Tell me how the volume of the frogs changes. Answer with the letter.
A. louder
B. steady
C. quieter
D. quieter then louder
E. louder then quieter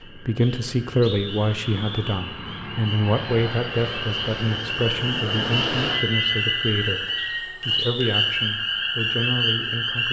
A.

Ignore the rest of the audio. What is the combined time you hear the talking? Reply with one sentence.
You can hear the talking for 10 seconds altogether.